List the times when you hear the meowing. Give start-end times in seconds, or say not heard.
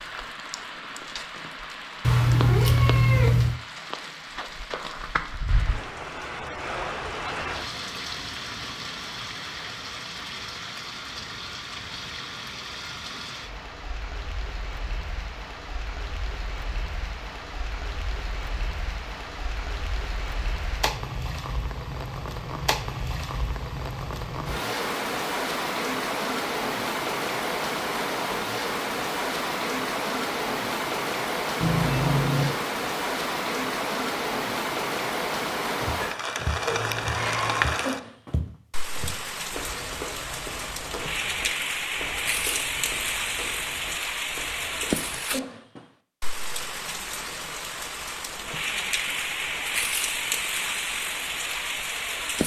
2.0-3.6, 31.6-32.5, 36.6-37.6.